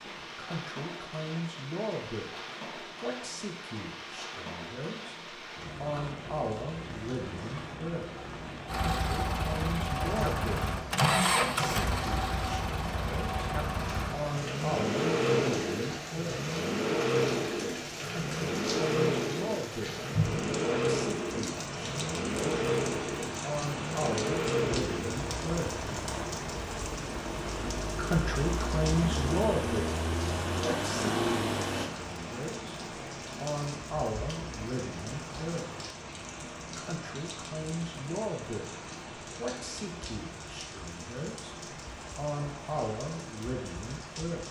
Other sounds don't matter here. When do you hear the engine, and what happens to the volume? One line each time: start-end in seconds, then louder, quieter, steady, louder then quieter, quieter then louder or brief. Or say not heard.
8.7-31.9 steady.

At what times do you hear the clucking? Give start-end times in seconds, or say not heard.
not heard.